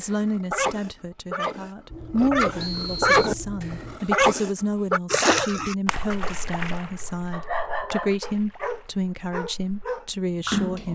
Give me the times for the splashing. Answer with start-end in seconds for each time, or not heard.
5.1-9.8, 10.4-10.9.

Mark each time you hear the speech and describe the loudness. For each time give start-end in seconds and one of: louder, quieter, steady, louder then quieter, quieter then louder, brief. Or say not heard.
0.0-10.9 steady.